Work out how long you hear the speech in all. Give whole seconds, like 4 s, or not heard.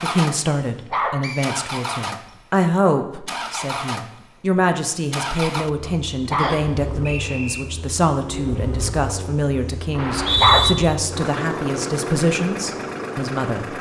14 s.